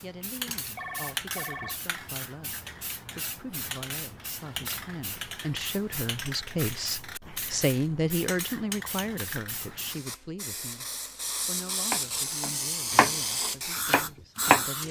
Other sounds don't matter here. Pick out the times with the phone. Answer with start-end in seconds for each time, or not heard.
0.8-1.8.